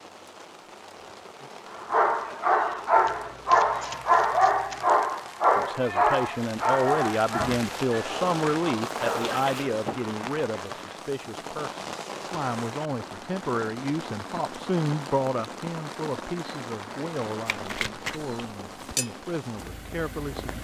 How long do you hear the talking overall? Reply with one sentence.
The talking can be heard for 15 seconds in total.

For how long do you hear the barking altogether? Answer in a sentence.
The barking can be heard for 8 seconds in total.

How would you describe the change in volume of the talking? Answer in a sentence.
The volume of the talking goes down.